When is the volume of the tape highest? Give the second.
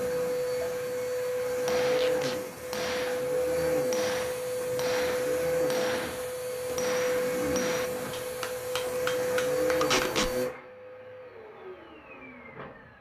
10 s.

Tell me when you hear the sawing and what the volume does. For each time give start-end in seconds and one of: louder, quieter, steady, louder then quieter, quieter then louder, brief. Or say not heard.
not heard.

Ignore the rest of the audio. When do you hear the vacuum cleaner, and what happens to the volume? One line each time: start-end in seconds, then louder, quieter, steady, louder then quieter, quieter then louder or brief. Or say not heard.
0.0-12.9 quieter.